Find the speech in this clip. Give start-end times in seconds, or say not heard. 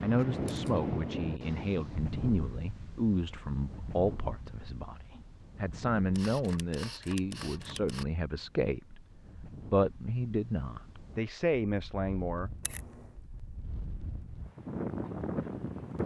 0.0-12.5.